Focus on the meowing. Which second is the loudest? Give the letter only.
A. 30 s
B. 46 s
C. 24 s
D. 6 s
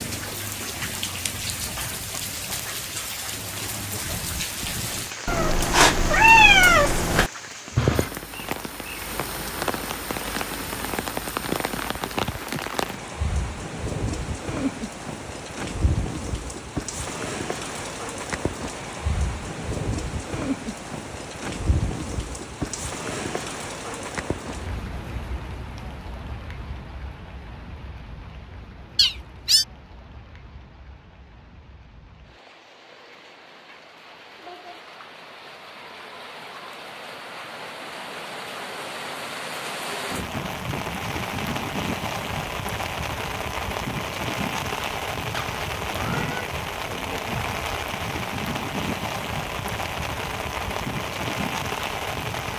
D.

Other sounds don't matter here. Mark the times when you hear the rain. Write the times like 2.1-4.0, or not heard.
0.0-52.5.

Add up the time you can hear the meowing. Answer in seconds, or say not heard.
4 s.